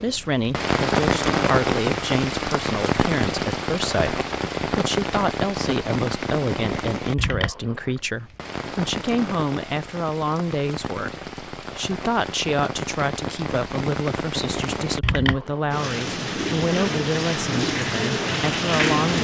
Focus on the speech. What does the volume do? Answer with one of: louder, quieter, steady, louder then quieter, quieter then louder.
steady.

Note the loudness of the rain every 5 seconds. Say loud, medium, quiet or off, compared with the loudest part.
loud, medium, medium, loud.